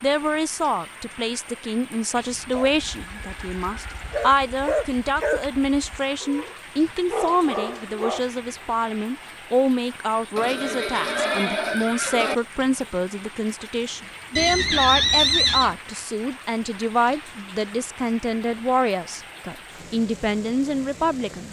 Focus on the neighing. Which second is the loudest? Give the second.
15 s.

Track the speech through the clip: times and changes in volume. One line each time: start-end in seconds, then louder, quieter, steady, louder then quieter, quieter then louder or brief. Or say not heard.
0.0-21.4 steady.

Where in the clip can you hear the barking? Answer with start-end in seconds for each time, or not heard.
2.5-8.2.